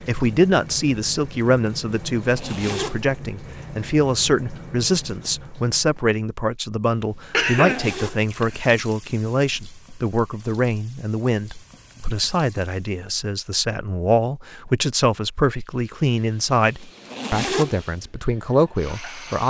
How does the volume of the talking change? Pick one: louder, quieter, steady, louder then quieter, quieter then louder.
steady.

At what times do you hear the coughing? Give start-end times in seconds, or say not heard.
7.3-8.7.